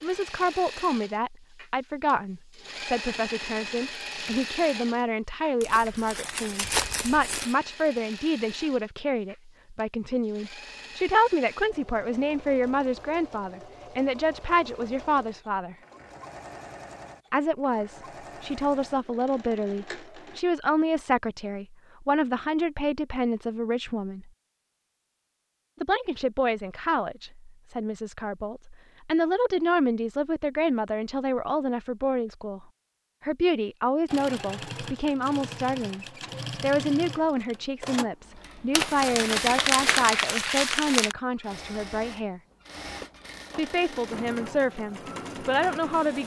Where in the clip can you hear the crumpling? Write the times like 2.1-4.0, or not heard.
5.6-7.5, 38.7-41.1.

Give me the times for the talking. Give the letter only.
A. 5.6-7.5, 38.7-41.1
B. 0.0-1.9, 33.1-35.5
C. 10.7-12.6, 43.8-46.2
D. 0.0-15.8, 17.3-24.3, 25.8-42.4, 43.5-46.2
D.